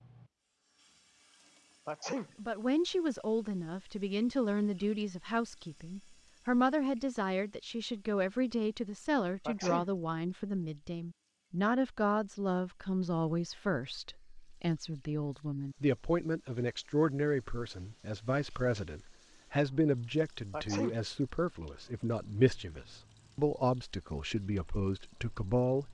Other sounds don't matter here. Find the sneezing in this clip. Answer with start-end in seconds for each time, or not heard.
1.9-2.3, 9.4-9.9, 20.5-21.0.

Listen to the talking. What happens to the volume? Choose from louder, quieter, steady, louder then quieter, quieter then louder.
steady.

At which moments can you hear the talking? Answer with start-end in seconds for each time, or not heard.
2.4-25.8.